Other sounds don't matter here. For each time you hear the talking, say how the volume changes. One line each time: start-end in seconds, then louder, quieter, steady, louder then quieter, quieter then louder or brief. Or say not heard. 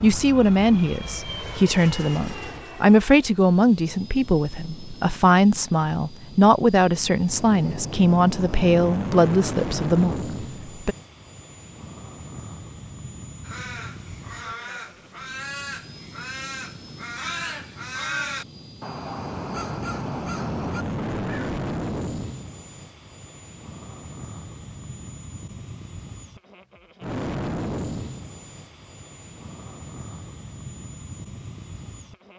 0.0-10.9 steady.